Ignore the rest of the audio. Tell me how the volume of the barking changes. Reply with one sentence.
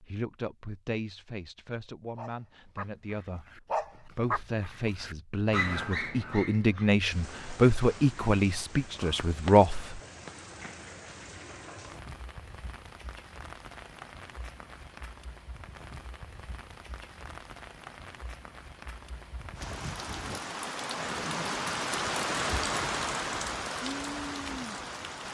The loudness of the barking goes up.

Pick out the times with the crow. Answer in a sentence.
The crow can't be heard in this clip.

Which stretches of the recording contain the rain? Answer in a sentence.
The rain can be heard from 7.1 to 25.2 s.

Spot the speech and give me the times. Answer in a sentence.
You can hear the speech from 0.0 to 10.0 s.